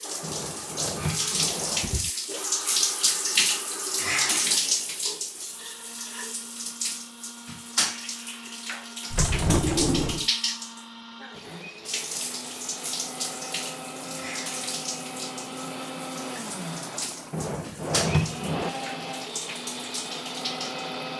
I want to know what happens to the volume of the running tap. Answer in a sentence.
The volume of the running tap goes down.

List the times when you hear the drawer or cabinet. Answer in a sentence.
You can hear the drawer or cabinet from 0.2 to 2.1 s, from 9.1 to 10.2 s and from 17.3 to 18.7 s.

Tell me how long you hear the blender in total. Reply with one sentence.
You can hear the blender for 21 seconds altogether.